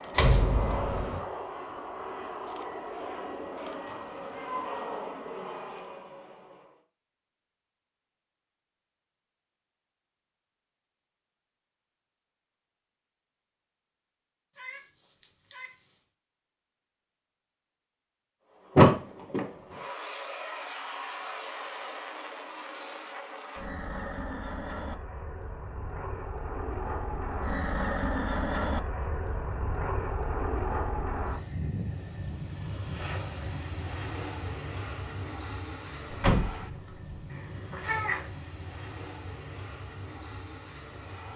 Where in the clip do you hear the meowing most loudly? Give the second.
38 s.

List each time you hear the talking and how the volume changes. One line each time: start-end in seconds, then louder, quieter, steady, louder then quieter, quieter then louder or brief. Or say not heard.
not heard.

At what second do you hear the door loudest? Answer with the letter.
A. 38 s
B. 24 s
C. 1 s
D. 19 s
D.